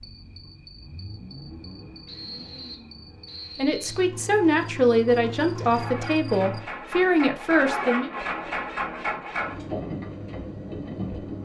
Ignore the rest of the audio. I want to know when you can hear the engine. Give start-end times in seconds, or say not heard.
0.0-11.4.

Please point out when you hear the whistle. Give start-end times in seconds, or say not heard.
2.0-3.9.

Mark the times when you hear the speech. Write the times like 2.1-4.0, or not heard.
3.5-8.1.